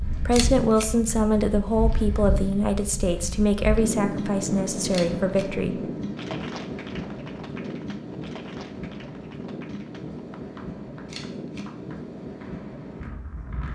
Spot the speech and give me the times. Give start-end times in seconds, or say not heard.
0.1-5.8.